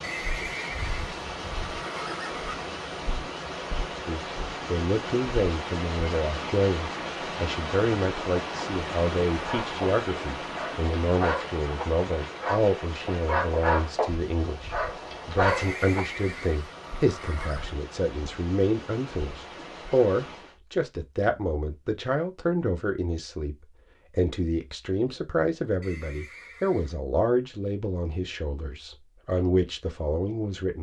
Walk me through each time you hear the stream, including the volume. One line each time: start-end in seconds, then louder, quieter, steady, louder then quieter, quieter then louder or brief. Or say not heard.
0.0-20.6 quieter.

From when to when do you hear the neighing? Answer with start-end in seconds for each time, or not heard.
0.0-2.6, 15.4-17.8, 25.8-26.9.